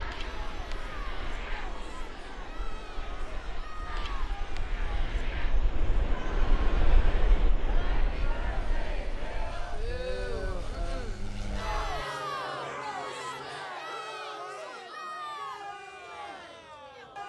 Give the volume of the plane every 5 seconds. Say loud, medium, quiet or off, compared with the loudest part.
loud, loud, loud, quiet.